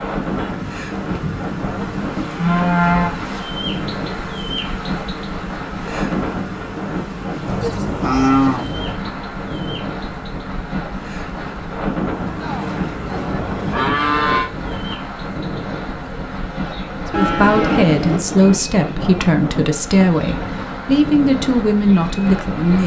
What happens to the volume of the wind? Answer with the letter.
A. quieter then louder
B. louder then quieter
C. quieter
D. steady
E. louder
D.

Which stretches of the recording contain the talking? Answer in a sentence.
The talking can be heard from 17.1 to 22.8 s.